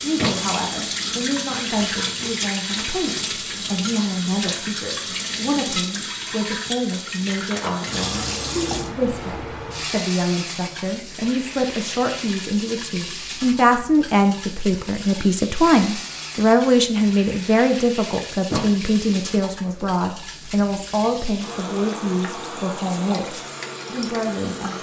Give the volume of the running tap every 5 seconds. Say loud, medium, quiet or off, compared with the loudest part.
loud, loud, medium, medium, medium.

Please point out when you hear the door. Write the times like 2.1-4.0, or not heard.
0.1-0.8, 18.5-19.2.